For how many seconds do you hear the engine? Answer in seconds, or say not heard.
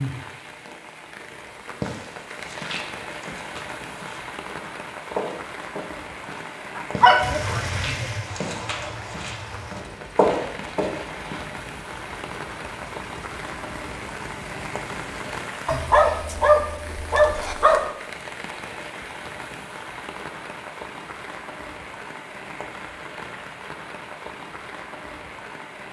8 s.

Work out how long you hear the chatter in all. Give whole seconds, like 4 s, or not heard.
not heard.